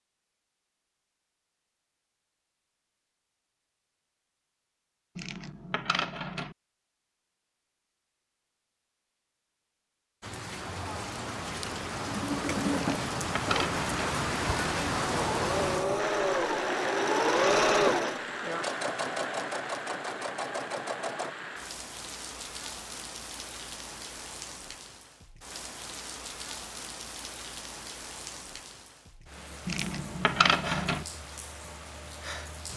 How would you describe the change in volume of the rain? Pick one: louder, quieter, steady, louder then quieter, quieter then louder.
quieter.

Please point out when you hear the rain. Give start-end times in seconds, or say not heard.
10.2-32.7.